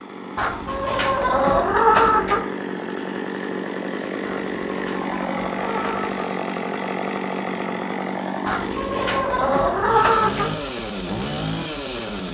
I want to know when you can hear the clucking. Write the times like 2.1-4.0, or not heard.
0.3-2.5, 4.2-6.2, 8.4-10.5.